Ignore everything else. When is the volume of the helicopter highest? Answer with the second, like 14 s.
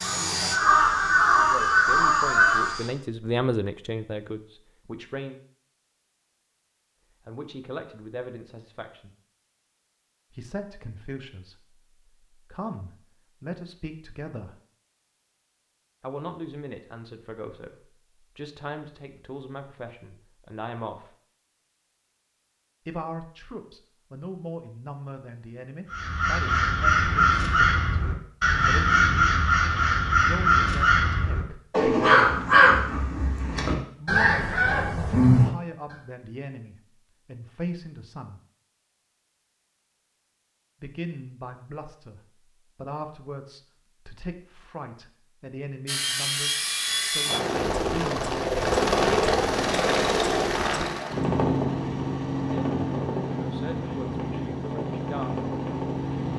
49 s.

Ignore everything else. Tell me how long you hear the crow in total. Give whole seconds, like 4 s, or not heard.
12 s.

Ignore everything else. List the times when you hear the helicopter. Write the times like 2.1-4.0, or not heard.
0.0-2.9, 45.9-56.3.